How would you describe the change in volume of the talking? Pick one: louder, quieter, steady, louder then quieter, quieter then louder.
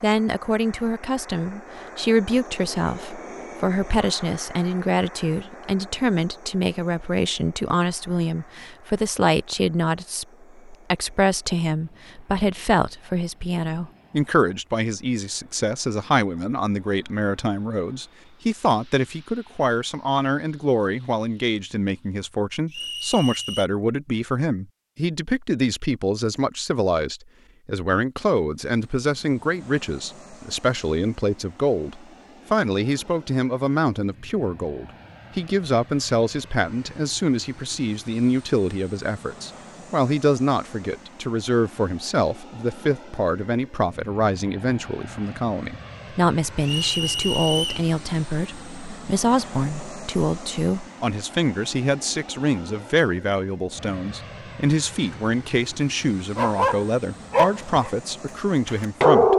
steady.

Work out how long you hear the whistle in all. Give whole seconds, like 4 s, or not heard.
2 s.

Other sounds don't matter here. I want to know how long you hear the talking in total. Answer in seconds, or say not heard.
59 s.